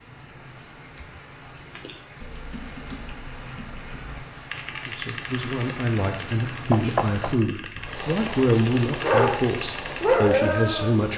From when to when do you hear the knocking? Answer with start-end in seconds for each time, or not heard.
6.7-7.3.